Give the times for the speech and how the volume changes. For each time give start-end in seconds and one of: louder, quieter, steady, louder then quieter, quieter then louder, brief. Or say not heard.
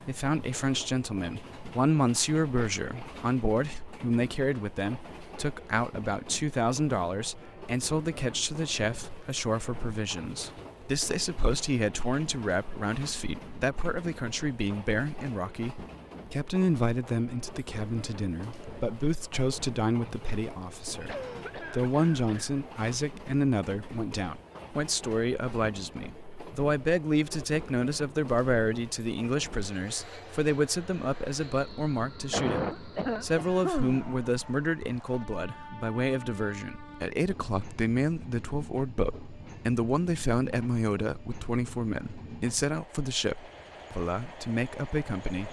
0.1-45.4 steady.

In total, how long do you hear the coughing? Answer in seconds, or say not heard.
4 s.